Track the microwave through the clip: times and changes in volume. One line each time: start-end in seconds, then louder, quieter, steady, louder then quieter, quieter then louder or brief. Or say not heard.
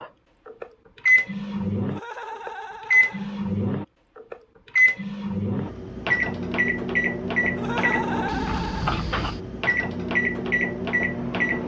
0.0-11.6 steady.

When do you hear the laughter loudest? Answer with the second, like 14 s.
8 s.